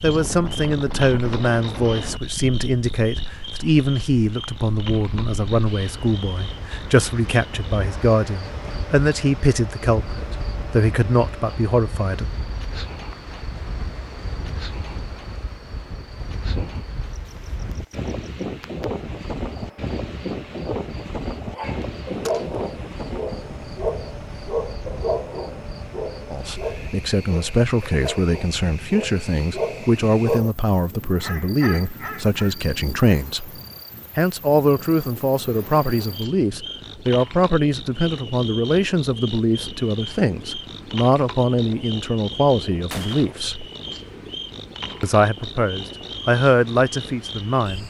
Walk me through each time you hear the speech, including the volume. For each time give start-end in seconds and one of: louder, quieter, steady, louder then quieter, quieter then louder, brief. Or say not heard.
0.0-12.2 steady
26.3-33.5 steady
34.1-43.6 steady
45.0-47.8 brief.